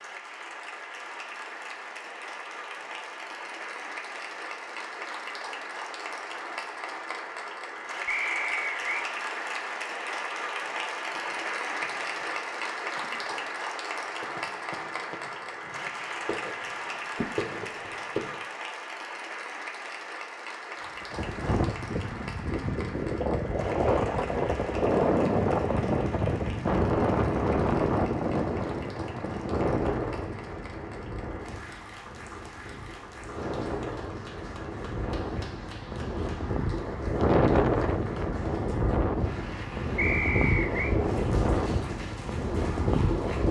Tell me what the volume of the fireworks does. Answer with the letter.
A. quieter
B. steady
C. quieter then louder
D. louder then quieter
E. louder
E.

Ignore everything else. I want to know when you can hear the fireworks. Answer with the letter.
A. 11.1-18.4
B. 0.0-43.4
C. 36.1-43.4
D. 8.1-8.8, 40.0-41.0
A.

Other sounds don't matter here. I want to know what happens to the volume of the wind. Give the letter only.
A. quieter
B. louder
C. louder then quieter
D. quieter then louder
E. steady
D.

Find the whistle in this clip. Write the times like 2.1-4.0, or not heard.
8.1-8.8, 40.0-41.0.